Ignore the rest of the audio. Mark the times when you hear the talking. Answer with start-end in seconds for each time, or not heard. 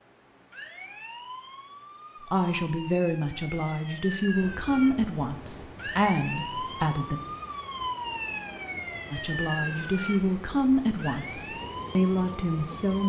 2.2-7.2, 9.1-13.0.